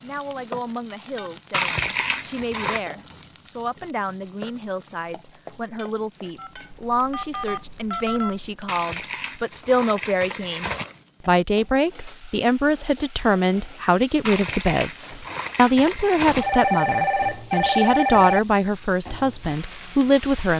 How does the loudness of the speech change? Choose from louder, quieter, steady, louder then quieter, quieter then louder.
louder.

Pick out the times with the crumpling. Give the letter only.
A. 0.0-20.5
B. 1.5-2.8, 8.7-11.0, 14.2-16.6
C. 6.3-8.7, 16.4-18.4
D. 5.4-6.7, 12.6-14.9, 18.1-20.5
B.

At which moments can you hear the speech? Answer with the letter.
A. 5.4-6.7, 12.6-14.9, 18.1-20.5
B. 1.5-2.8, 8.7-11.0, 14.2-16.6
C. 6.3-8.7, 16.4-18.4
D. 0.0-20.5
D.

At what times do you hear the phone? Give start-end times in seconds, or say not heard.
6.3-8.7, 16.4-18.4.